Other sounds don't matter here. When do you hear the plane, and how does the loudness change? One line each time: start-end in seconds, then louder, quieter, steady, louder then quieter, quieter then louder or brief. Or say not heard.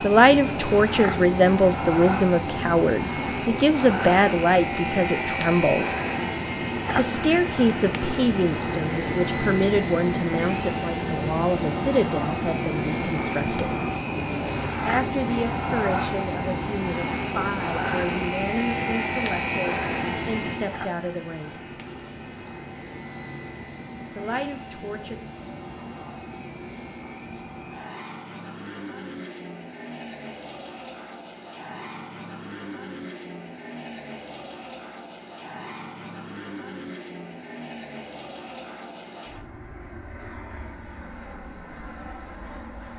0.0-42.9 quieter.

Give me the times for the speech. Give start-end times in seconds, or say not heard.
0.0-6.0, 7.0-13.8, 14.8-21.6, 24.1-25.2.